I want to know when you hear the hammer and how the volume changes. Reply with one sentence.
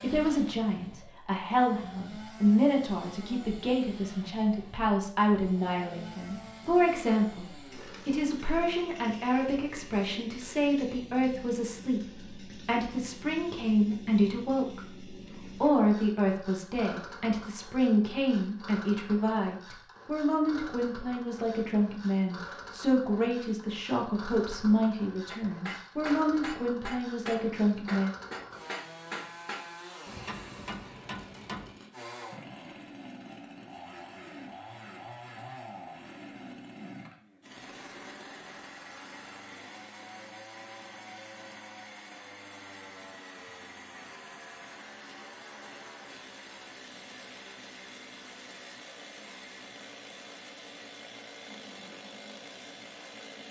You can hear the hammer from 25.2 to 31.8 s, at a steady volume.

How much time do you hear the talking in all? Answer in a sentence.
The talking can be heard for 28 seconds in total.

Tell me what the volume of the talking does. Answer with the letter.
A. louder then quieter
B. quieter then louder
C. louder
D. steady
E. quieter
D.